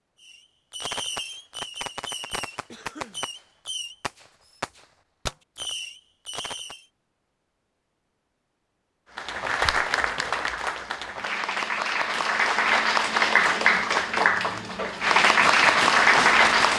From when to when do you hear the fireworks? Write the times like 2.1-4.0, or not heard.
0.2-6.8, 15.1-16.7.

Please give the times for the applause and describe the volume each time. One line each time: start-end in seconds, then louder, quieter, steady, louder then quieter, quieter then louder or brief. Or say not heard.
9.2-16.7 louder.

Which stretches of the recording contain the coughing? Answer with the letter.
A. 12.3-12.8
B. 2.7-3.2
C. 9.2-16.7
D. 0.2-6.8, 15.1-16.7
B.